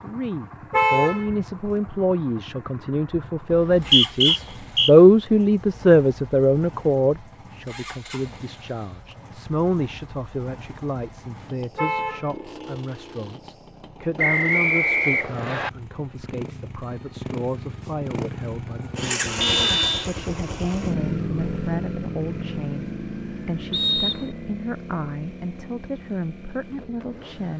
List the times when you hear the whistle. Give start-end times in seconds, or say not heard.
3.5-4.9, 14.2-15.7, 23.7-24.3.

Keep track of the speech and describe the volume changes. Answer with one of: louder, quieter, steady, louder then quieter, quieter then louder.
quieter.